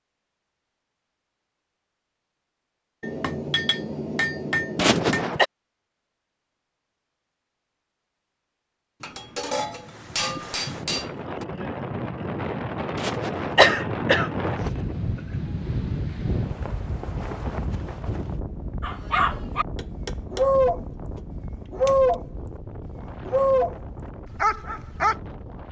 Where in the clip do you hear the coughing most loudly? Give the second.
14 s.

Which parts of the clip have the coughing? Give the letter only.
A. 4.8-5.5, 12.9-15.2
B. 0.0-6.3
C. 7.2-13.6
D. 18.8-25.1
A.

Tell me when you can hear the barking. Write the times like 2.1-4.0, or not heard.
18.8-25.1.